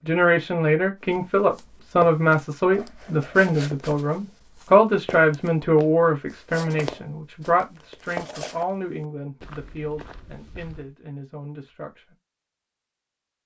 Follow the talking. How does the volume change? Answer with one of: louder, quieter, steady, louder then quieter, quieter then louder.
quieter.